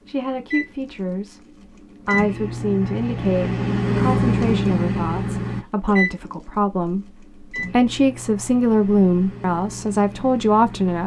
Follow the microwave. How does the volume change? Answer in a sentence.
The volume of the microwave goes up, then down.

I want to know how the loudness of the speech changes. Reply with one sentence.
The volume of the speech goes up.